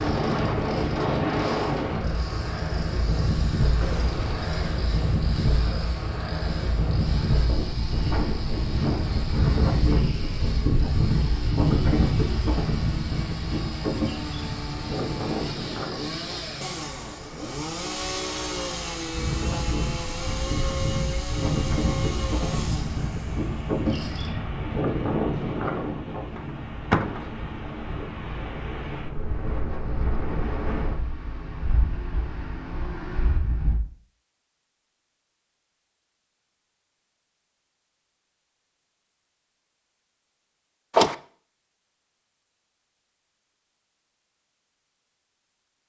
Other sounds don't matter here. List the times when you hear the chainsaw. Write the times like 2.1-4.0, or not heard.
0.0-24.3.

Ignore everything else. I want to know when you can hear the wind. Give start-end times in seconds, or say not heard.
0.0-33.8.